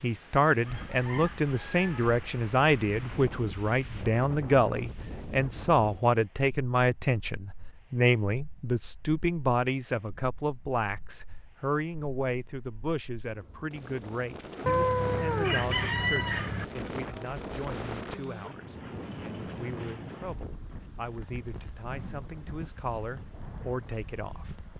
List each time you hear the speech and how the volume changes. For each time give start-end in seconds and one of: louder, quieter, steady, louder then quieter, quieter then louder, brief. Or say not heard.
0.0-24.5 quieter.